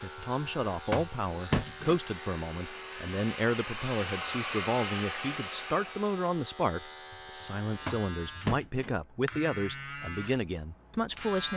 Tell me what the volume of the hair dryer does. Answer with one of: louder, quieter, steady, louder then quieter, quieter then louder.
louder.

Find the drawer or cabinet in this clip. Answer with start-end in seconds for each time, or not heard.
0.1-2.0, 7.1-8.9.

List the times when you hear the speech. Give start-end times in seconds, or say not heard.
0.0-11.5.